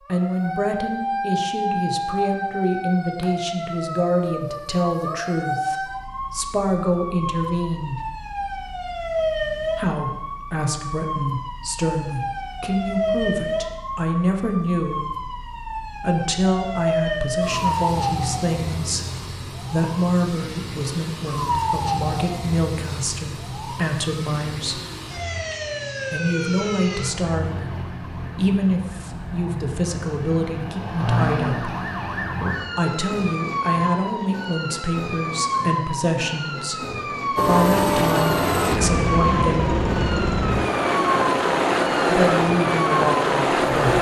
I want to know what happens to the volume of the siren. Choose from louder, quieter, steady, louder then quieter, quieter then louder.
steady.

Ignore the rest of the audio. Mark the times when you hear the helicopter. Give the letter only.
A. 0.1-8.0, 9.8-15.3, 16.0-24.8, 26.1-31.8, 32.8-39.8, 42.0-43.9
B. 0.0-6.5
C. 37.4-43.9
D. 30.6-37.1
C.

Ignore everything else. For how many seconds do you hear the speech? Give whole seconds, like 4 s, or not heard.
37 s.